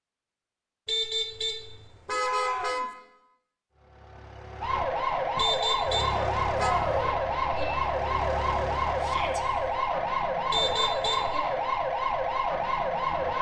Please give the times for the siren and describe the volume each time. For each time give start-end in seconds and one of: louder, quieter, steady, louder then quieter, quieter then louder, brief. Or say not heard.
4.6-13.3 steady.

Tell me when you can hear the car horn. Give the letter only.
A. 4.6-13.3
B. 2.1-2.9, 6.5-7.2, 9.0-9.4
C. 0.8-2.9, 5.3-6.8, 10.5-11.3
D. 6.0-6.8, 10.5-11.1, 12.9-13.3
C.